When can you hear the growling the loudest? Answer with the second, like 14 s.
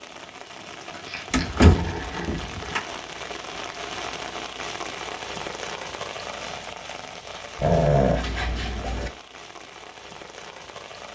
8 s.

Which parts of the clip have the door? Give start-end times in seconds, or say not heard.
1.3-2.8.